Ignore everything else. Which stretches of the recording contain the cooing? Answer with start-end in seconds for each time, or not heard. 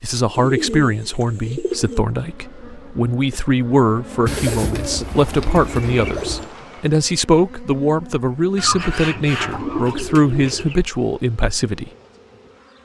0.3-2.0, 4.2-6.5, 8.6-10.8.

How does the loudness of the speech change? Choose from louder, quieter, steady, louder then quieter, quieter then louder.
steady.